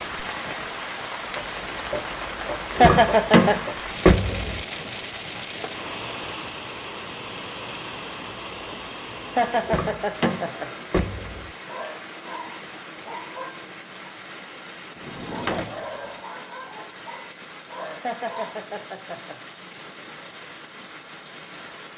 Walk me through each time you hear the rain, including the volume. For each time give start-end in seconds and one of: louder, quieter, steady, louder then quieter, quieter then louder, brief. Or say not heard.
0.0-21.9 quieter.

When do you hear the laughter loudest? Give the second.
3 s.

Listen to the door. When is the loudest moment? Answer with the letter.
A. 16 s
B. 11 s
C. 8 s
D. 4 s
D.